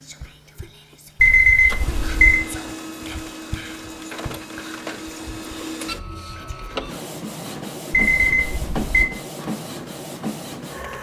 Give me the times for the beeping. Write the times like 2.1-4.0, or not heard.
1.2-2.4, 7.9-8.9.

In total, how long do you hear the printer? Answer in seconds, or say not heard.
11 s.